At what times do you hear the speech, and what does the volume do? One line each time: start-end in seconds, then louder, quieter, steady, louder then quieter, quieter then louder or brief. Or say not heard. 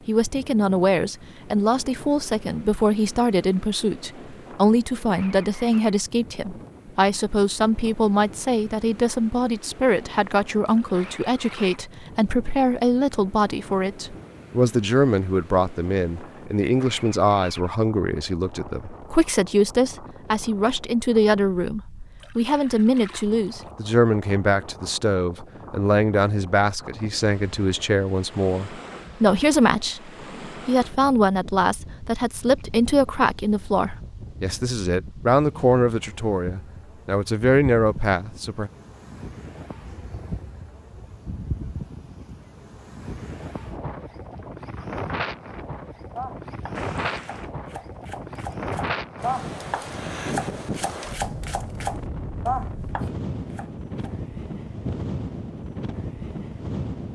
0.1-38.7 steady.